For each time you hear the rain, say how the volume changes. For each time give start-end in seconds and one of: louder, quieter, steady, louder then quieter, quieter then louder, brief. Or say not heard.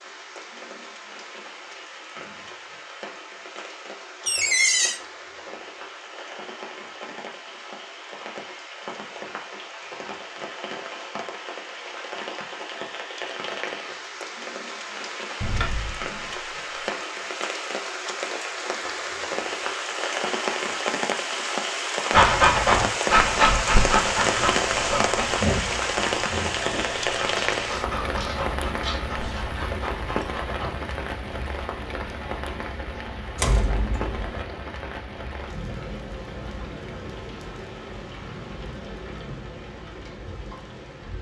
0.0-41.1 louder then quieter.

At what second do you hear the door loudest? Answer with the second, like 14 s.
5 s.